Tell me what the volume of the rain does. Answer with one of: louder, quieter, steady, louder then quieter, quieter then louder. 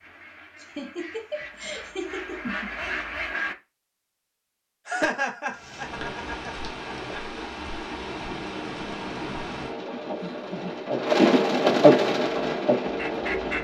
louder.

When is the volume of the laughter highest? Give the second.
5 s.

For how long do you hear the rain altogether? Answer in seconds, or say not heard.
8 s.